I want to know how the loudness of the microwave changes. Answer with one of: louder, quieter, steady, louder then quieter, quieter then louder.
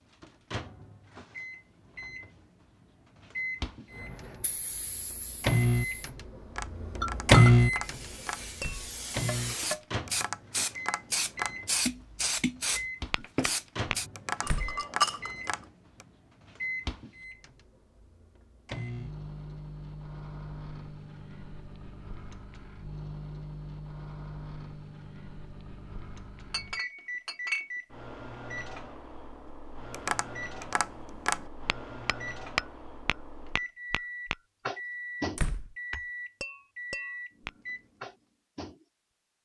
quieter.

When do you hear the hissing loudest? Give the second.
12 s.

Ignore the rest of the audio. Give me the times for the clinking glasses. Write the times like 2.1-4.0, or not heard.
7.0-7.5, 14.4-15.3, 26.5-27.7.